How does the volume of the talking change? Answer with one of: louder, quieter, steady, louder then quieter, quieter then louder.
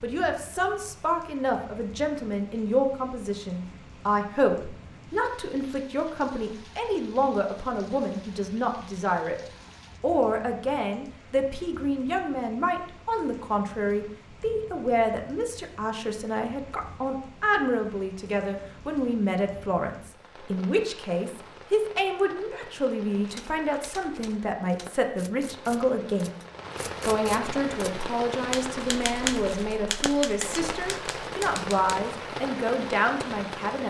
steady.